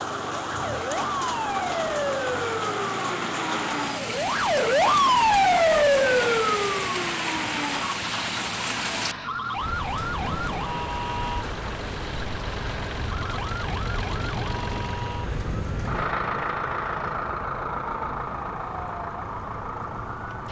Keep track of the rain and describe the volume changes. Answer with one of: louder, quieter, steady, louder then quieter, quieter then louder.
quieter.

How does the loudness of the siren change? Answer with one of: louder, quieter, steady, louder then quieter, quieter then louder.
louder then quieter.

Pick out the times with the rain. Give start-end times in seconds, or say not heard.
0.0-20.4.